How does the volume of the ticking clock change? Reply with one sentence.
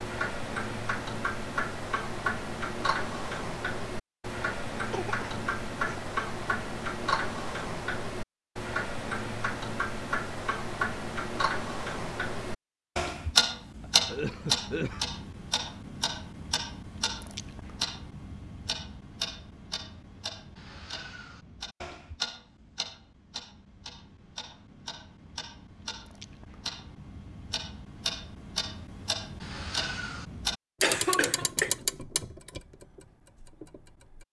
The loudness of the ticking clock goes down, then up.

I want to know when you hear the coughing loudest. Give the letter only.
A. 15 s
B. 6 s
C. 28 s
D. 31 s
D.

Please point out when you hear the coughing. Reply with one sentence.
You can hear the coughing from 4.9 to 6.1 s, from 13.8 to 15.1 s and from 30.8 to 31.8 s.